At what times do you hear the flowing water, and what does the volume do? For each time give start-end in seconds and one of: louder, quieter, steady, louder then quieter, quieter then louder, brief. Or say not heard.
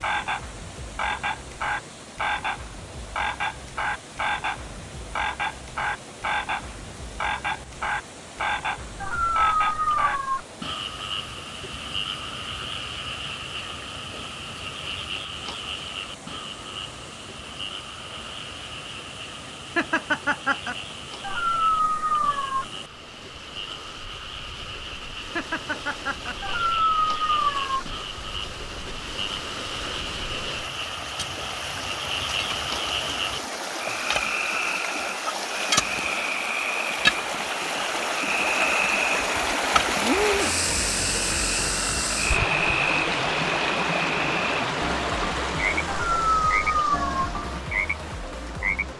0.0-48.9 louder.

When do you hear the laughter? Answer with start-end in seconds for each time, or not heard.
19.8-20.8, 25.4-26.4.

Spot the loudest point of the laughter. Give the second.
20 s.